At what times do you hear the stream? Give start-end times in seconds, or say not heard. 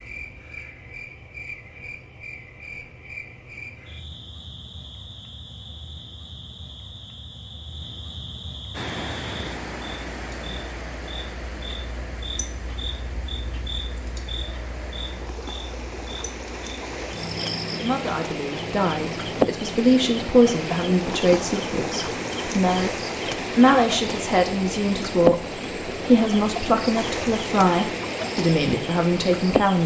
8.7-29.8.